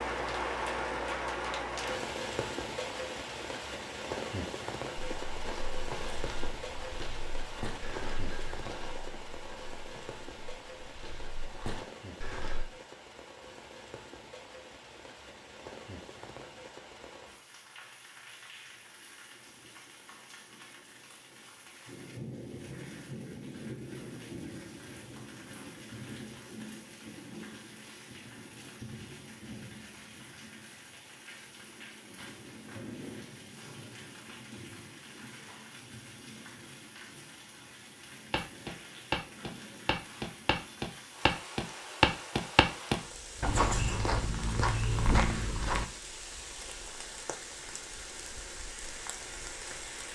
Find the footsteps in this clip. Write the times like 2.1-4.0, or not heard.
5.0-12.7, 38.3-45.9.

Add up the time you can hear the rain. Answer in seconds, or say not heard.
50 s.